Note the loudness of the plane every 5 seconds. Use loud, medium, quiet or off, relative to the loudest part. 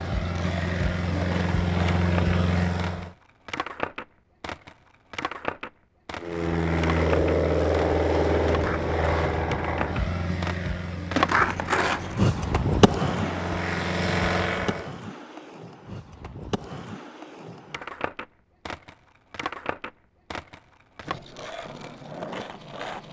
loud, loud, medium, off, off.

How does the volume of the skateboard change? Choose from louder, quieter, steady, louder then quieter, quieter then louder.
louder then quieter.